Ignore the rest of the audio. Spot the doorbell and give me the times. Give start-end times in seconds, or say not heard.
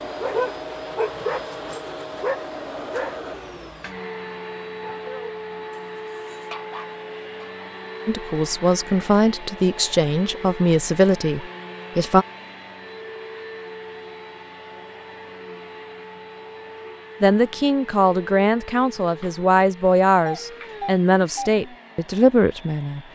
20.2-21.6.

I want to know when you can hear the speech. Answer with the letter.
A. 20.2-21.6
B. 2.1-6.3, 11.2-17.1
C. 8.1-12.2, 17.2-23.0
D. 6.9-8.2
C.